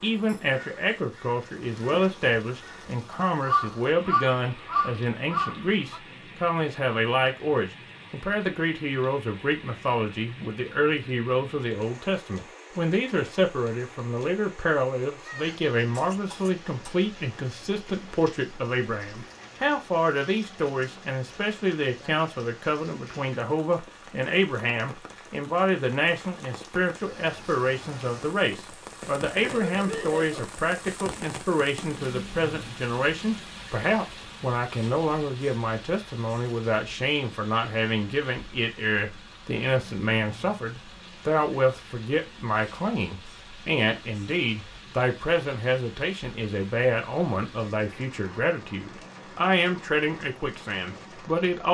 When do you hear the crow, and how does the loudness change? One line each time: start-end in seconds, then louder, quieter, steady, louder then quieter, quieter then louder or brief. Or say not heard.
0.0-6.0 louder.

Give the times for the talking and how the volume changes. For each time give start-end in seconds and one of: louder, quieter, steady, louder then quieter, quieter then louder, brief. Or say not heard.
0.0-51.6 steady.